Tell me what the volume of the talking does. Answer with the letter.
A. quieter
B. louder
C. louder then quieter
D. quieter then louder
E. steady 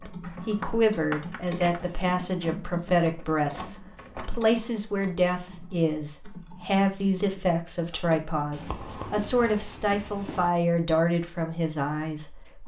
E.